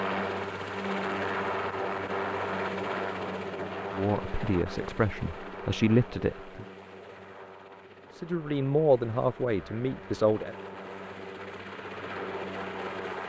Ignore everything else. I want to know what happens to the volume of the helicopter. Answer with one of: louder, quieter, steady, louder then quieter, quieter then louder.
quieter then louder.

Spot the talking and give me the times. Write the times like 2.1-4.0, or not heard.
3.9-6.7, 8.2-10.6.